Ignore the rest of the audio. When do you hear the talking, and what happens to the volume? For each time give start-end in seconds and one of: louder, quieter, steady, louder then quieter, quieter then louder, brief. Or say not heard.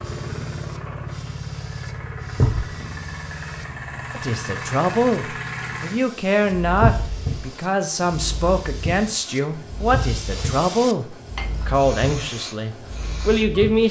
4.2-13.8 steady.